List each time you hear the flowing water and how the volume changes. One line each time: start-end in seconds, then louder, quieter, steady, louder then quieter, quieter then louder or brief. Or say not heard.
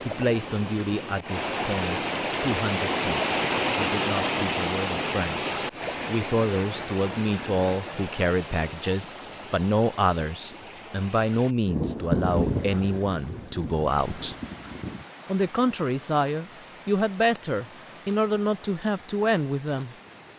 0.0-20.3 quieter.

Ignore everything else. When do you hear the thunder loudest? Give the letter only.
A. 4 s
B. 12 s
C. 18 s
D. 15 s
B.